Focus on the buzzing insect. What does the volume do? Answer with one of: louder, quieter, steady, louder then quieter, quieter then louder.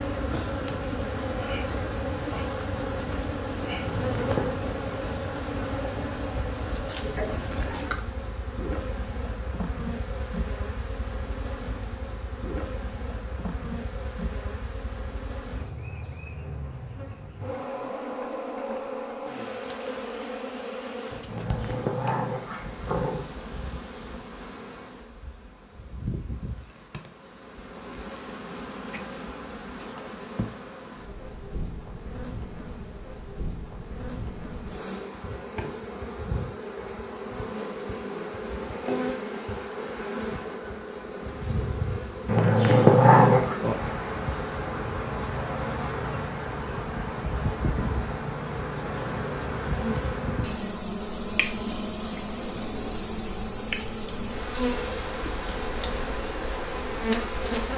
quieter then louder.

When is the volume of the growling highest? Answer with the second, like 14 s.
43 s.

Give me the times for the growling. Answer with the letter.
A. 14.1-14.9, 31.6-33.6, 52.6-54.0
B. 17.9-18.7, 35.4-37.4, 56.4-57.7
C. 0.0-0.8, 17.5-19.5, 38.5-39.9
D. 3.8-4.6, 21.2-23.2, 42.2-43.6
D.